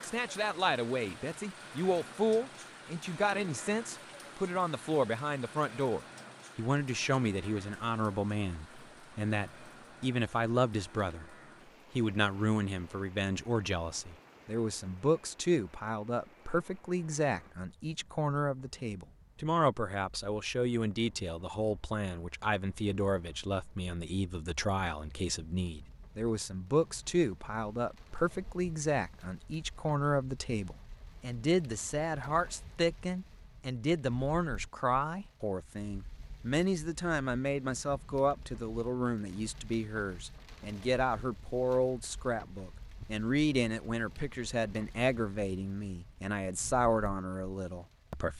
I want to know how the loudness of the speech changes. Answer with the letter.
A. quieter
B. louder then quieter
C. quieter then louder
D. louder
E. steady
E.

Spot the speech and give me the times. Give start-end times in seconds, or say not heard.
0.0-11.3, 11.9-48.3.